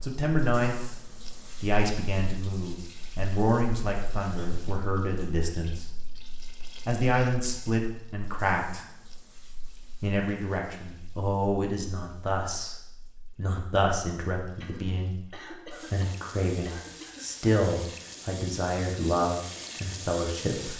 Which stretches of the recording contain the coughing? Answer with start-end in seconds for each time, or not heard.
4.3-4.9, 14.6-17.2.